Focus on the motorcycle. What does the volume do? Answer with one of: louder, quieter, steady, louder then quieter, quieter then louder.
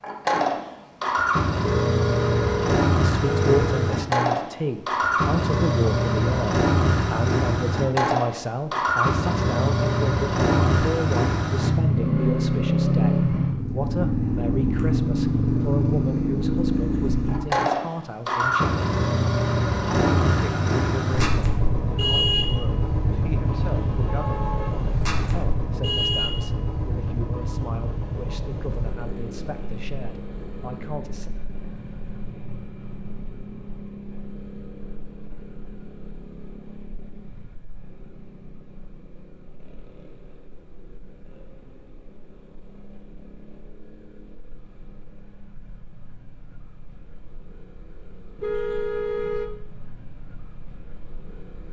quieter.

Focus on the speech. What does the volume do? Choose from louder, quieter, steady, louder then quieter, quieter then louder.
quieter.